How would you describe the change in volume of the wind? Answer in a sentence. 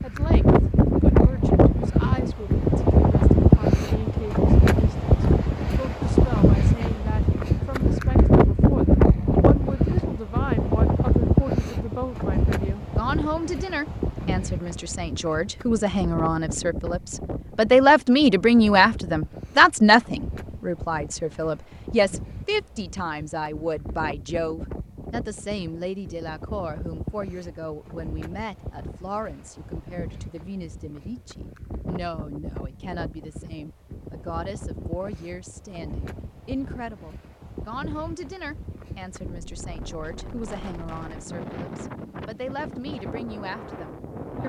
The volume of the wind goes down.